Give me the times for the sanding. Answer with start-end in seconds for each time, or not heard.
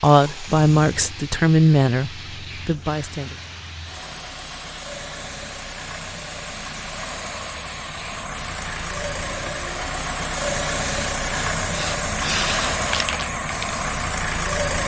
not heard.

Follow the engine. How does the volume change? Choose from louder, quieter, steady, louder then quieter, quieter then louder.
louder.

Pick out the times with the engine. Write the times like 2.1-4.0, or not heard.
0.0-14.8.